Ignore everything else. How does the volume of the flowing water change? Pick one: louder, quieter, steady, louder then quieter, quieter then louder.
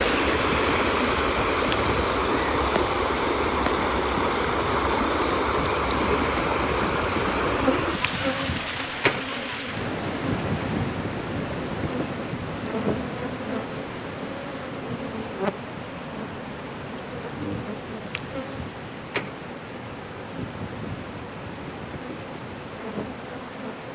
quieter.